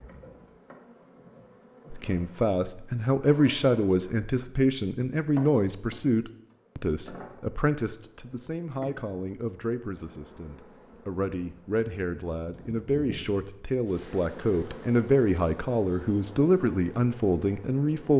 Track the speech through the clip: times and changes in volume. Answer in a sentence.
You can hear the speech from 1.9 to 18.1 s, getting quieter then louder.